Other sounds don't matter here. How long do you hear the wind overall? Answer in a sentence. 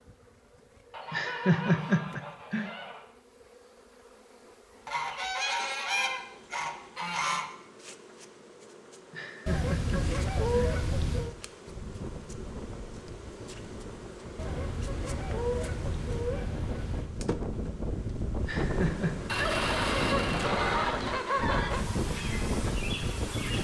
You can hear the wind for 12 seconds altogether.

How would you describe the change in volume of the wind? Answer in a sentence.
The volume of the wind goes up.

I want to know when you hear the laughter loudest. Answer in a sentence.
The loudest moment of the laughter is at 2 seconds.